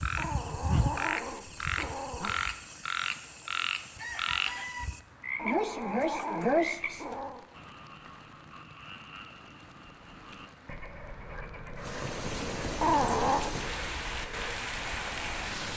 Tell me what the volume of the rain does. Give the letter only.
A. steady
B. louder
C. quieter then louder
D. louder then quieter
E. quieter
B.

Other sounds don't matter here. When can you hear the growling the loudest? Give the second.
13 s.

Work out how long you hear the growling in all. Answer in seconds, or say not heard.
5 s.